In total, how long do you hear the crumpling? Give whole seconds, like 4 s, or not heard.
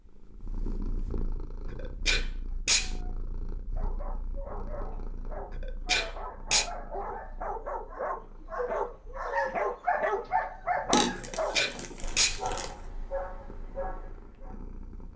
2 s.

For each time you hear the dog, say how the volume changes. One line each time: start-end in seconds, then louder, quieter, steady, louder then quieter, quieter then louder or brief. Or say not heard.
2.9-14.6 louder then quieter.